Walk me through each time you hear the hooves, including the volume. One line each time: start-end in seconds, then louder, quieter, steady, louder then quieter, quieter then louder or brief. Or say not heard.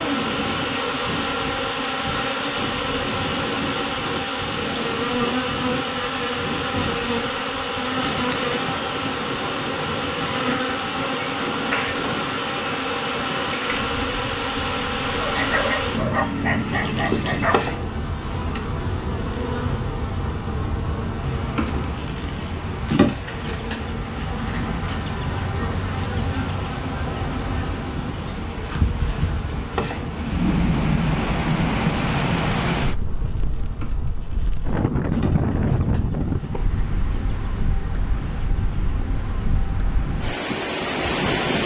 not heard.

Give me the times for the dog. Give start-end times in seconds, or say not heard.
15.2-17.6.